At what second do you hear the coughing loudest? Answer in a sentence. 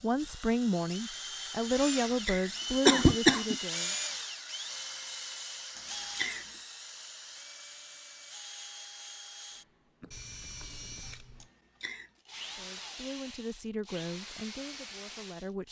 The loudest moment of the coughing is at 3 seconds.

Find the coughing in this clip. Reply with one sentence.
The coughing can be heard from 1.8 to 3.5 s, from 5.8 to 6.5 s and from 11.4 to 12.1 s.